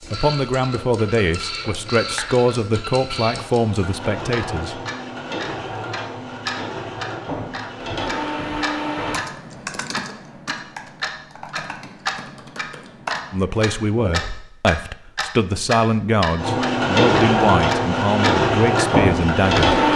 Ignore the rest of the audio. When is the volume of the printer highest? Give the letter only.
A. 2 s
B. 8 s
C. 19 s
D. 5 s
C.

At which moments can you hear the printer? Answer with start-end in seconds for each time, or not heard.
0.0-9.2, 16.4-19.9.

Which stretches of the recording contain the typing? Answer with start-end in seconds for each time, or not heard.
8.8-14.4.